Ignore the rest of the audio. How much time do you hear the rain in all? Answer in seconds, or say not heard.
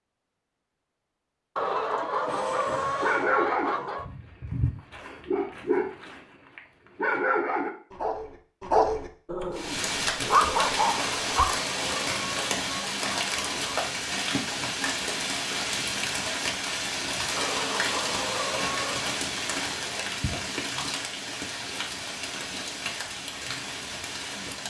15 s.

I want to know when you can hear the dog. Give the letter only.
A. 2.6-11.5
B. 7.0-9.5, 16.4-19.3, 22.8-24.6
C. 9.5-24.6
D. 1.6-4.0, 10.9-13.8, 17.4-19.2
A.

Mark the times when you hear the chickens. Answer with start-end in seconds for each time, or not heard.
1.6-4.0, 10.9-13.8, 17.4-19.2.